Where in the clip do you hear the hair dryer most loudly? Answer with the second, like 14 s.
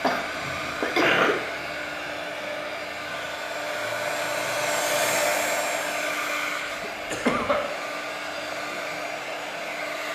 5 s.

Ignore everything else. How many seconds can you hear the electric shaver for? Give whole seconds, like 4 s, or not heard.
not heard.